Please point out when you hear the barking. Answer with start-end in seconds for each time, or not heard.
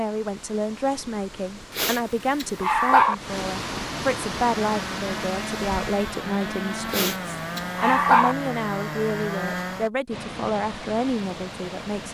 1.8-3.1, 6.9-8.3.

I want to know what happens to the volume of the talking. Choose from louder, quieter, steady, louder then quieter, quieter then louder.
steady.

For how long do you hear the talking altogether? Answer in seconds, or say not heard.
12 s.